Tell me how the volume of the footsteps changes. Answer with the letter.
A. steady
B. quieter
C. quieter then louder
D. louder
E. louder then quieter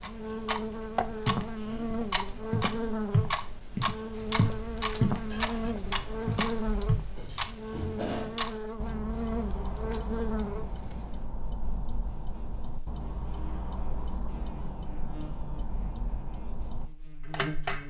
E.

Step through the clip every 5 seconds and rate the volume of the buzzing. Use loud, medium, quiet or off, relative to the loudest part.
loud, loud, medium, medium.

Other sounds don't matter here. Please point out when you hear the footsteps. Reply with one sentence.
The footsteps can be heard from 1.2 to 7.0 s.